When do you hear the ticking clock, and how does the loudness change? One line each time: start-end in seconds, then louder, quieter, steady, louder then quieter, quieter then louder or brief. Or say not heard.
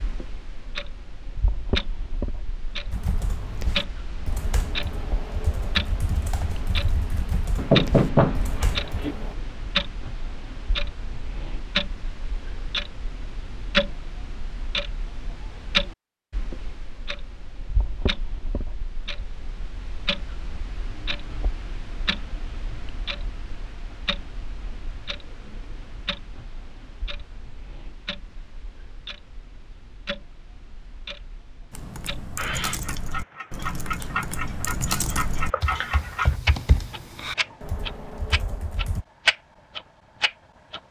0.0-40.8 quieter then louder.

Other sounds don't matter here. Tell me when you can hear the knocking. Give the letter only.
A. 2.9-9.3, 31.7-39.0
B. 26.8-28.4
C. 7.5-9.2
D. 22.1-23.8
C.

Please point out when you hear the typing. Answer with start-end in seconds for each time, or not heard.
2.9-9.3, 31.7-39.0.